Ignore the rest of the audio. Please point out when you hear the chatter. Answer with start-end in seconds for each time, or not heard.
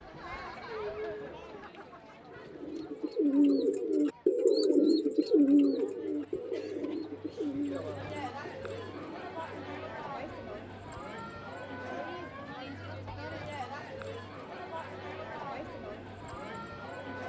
0.0-17.2.